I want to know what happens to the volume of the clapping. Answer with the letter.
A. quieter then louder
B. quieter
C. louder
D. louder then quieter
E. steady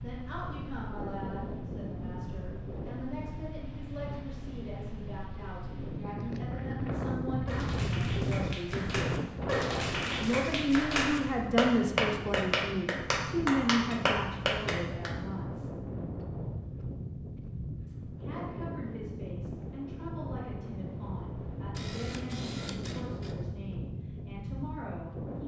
C.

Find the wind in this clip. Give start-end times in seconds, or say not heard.
0.0-25.4.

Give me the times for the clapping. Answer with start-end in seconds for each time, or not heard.
7.5-15.2.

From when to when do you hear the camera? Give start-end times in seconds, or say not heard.
21.7-23.4.